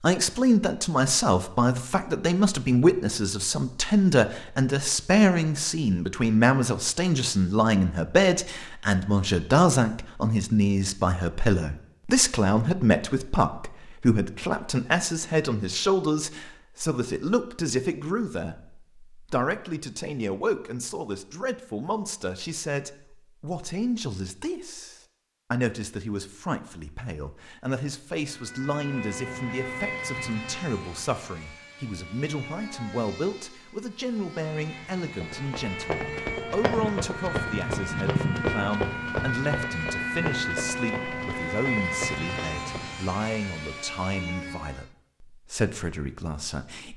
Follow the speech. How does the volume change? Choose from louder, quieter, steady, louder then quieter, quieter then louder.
quieter.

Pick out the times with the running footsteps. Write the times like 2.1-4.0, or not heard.
35.2-43.0.